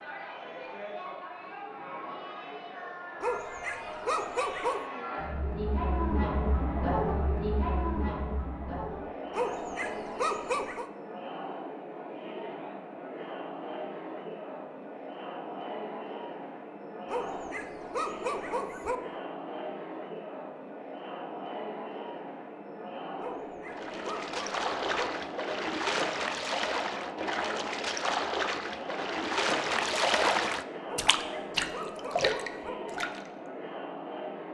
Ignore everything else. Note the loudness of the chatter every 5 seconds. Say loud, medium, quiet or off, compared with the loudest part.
medium, loud, medium, medium, medium, medium, medium.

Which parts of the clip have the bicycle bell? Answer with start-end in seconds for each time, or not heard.
not heard.